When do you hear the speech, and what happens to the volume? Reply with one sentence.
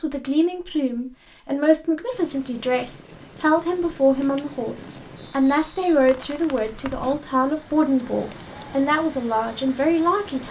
You can hear the speech from 0.0 to 10.4 s, at a steady volume.